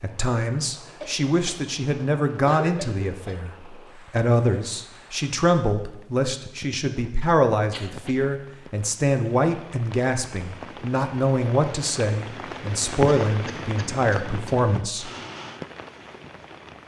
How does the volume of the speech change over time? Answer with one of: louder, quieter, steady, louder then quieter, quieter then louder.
steady.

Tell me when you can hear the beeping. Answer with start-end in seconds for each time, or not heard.
not heard.